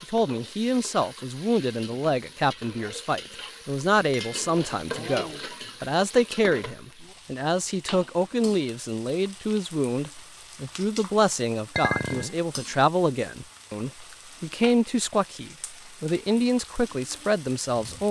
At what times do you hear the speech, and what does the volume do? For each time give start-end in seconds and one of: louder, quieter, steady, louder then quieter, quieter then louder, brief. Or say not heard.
0.0-18.0 steady.